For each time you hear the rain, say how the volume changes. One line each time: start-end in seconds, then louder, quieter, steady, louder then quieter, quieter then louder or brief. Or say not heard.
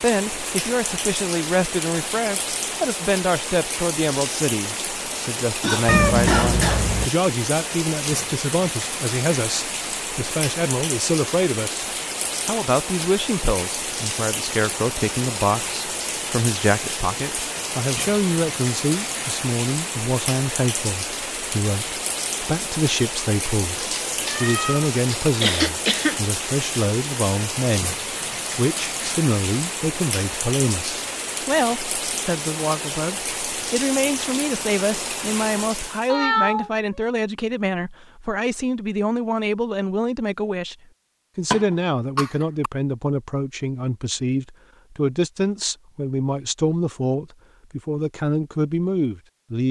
0.0-36.1 steady.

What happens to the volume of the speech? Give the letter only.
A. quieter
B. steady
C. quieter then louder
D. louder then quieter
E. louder
B.